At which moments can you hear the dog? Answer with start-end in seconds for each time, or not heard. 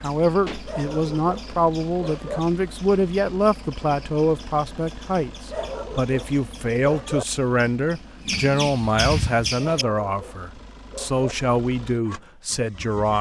0.7-2.4, 5.5-7.2, 9.6-11.3.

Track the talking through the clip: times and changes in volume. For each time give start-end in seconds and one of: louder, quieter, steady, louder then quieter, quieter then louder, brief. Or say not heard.
0.0-13.1 steady.